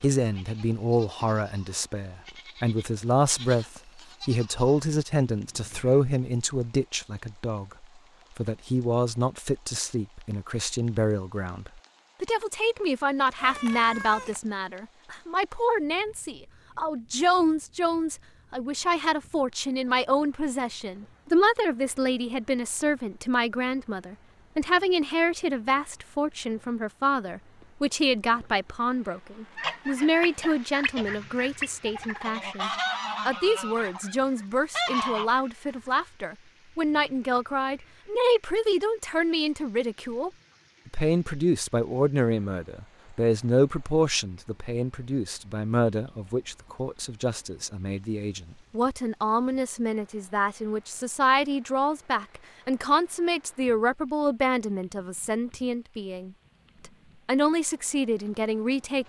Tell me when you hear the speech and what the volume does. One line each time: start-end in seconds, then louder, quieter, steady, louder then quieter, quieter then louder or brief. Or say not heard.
0.0-59.0 steady.